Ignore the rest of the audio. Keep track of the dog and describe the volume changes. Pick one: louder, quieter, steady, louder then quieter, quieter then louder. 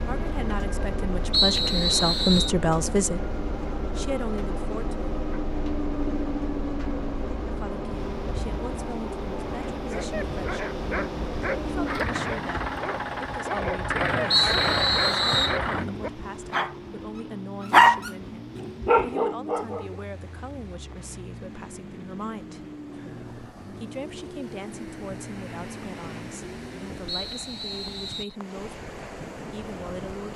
louder.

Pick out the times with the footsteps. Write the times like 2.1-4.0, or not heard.
not heard.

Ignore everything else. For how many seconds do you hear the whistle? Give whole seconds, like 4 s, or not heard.
4 s.